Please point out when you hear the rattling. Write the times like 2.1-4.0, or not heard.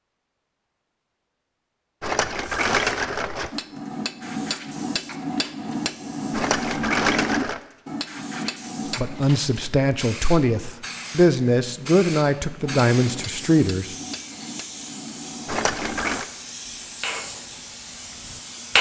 2.0-3.5, 6.3-7.6, 15.4-16.2.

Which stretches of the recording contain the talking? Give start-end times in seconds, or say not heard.
8.9-13.9.